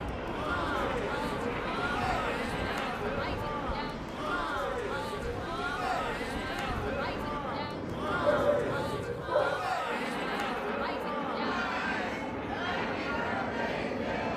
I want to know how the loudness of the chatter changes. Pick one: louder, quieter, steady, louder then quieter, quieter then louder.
steady.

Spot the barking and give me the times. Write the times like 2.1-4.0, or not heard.
8.2-9.7.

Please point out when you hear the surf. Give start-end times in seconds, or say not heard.
0.0-8.0.